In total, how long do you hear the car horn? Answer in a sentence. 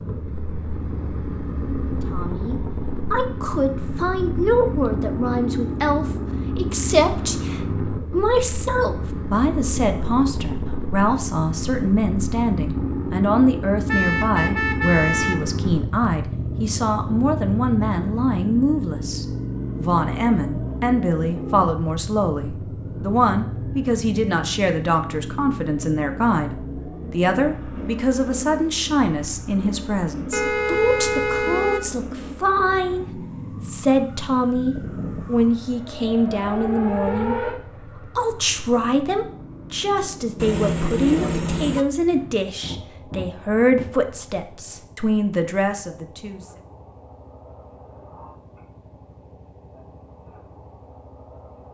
You can hear the car horn for 5 seconds altogether.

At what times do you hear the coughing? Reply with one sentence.
You can't hear the coughing here.